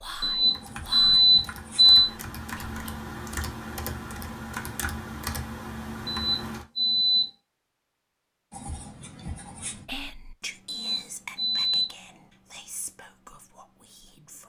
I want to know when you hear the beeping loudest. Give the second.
2 s.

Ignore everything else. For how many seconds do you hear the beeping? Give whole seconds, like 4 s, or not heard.
4 s.